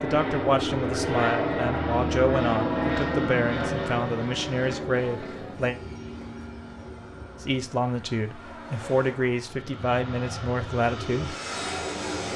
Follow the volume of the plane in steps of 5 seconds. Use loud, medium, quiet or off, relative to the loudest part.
loud, quiet, medium.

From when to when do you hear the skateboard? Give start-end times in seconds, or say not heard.
not heard.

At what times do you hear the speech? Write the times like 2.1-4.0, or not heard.
0.0-5.8, 7.4-11.3.